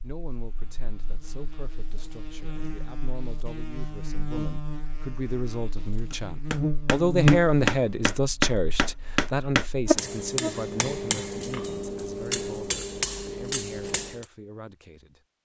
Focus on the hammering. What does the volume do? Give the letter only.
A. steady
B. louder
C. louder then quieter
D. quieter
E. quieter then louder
D.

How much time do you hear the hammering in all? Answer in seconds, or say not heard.
8 s.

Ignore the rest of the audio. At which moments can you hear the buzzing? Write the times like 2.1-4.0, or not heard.
0.1-10.6.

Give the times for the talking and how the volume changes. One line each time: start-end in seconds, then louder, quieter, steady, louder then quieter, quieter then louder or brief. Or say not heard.
0.0-15.2 louder then quieter.